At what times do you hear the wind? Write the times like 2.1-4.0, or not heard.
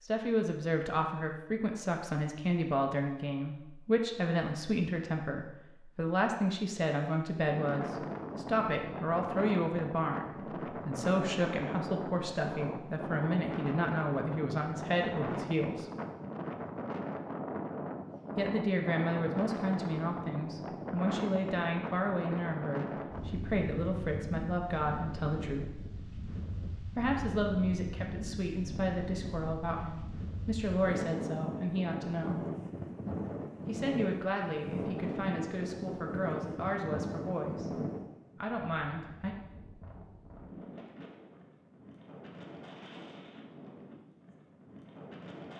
7.5-45.5.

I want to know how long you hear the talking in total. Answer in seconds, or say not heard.
34 s.